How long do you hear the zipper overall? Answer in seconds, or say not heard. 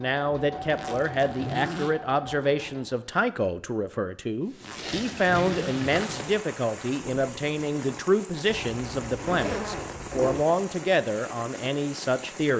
5 s.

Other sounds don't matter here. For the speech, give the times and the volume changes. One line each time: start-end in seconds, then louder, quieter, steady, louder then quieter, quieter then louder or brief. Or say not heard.
0.0-12.5 steady.